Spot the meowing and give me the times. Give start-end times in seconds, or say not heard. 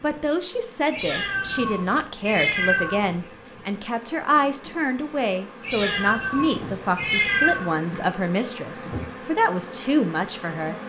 0.9-3.2, 5.6-7.7.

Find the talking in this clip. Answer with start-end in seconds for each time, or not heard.
0.0-10.8.